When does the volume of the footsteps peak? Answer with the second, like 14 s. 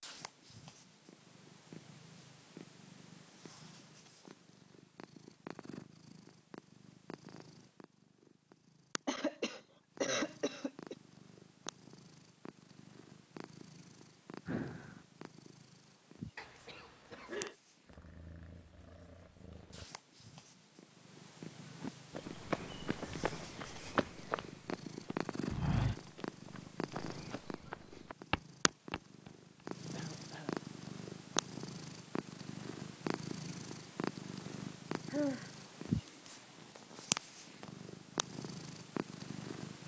26 s.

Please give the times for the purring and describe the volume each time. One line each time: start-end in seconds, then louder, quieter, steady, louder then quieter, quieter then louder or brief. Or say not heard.
0.0-39.8 louder.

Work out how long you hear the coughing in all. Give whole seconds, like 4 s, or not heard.
4 s.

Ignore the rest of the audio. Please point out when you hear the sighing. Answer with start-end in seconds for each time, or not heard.
14.4-15.0, 35.0-35.5.